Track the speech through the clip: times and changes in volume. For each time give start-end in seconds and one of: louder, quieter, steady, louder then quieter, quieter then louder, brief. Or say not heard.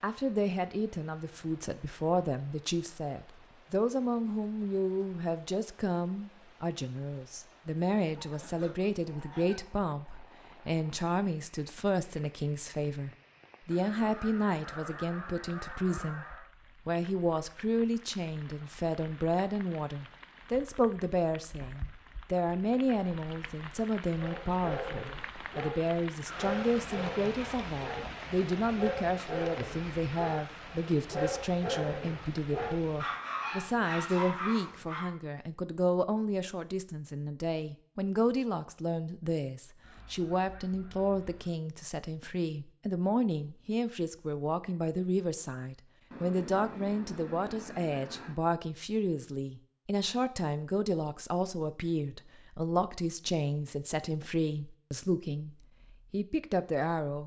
0.0-57.2 steady.